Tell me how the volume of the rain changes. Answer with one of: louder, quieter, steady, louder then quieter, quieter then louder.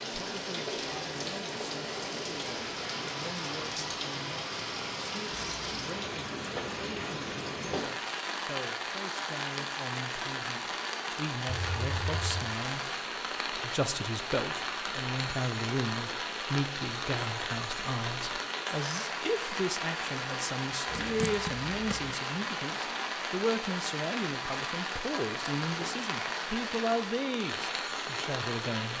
steady.